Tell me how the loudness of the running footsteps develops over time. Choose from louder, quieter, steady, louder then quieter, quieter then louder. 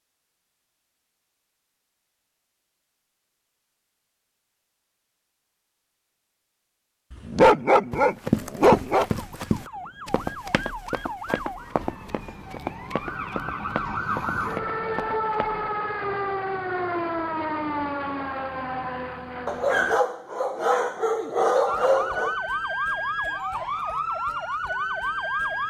quieter.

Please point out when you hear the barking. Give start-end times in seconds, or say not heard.
7.2-9.1, 19.4-22.4.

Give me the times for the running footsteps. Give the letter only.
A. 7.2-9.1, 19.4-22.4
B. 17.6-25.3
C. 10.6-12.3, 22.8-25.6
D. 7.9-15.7
D.